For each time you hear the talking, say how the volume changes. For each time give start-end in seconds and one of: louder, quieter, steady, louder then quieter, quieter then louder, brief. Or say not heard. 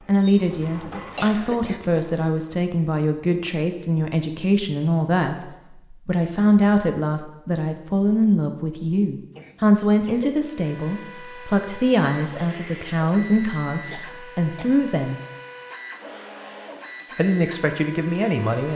0.1-15.2 steady
17.1-18.7 brief.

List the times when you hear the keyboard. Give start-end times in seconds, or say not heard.
not heard.